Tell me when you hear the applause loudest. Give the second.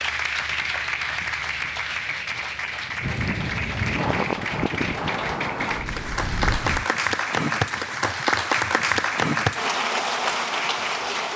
9 s.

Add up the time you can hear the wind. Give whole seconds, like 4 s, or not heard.
7 s.